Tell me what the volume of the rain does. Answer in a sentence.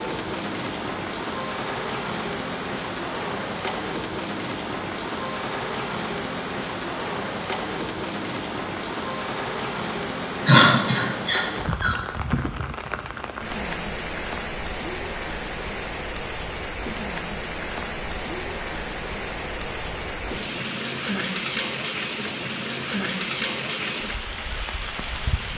The loudness of the rain stays about the same.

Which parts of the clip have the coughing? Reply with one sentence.
You can hear the coughing from 10.4 to 11.9 s.